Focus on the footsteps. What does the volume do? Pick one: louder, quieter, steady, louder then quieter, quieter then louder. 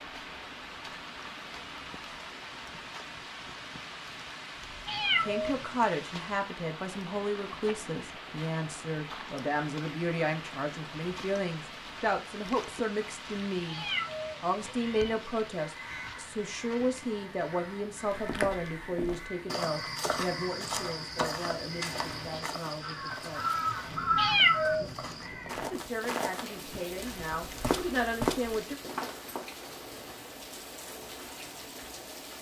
quieter then louder.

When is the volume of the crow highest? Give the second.
24 s.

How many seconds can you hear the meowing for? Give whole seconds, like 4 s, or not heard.
3 s.